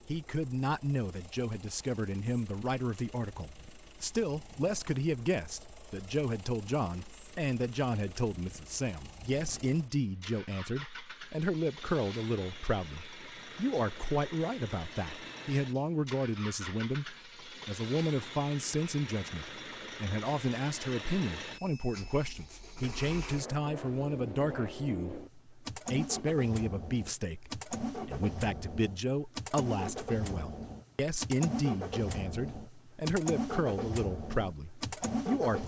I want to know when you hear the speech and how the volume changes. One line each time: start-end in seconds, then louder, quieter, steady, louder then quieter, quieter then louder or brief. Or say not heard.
0.1-35.6 steady.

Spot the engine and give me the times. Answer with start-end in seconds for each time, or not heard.
0.0-35.6.